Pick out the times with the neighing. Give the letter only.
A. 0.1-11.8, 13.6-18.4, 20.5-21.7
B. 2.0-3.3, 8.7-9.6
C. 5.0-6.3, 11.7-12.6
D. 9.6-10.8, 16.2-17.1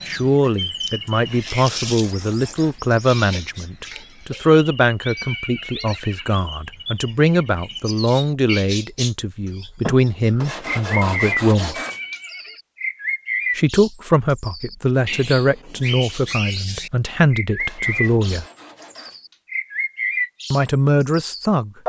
C.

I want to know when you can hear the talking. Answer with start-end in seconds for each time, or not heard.
0.1-11.8, 13.6-18.4, 20.5-21.7.